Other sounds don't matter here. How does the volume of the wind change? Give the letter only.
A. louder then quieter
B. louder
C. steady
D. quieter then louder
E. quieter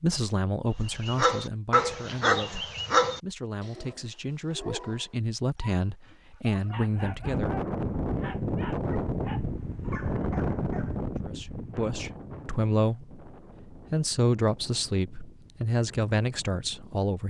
E.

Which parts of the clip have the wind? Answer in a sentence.
You can hear the wind from 7.0 to 17.1 s.